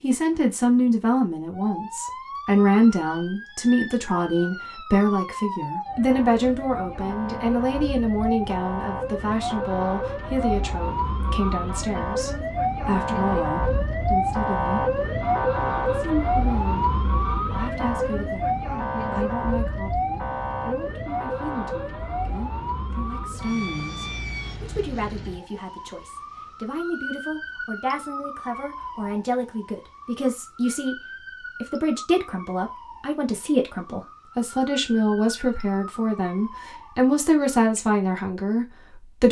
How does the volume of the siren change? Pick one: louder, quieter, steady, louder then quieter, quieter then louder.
louder then quieter.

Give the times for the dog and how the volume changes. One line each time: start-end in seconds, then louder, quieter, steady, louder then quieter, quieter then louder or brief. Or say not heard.
not heard.